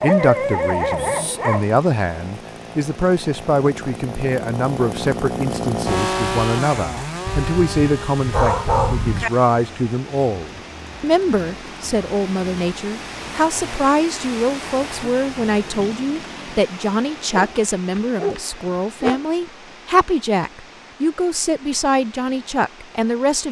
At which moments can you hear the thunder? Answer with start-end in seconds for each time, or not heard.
7.2-9.3.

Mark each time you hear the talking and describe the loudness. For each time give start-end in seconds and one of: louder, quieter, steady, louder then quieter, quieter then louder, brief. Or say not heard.
0.0-23.4 steady.